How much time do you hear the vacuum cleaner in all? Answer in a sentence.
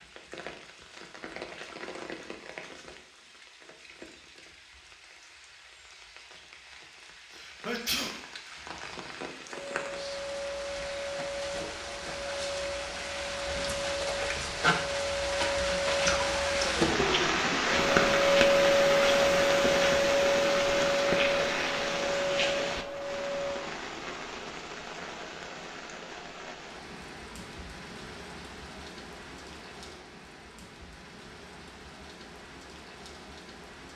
The vacuum cleaner can be heard for 14 seconds in total.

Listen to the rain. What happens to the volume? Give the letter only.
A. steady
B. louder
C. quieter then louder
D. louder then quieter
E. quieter
D.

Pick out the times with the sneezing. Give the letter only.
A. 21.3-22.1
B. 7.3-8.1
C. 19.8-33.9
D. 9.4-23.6
B.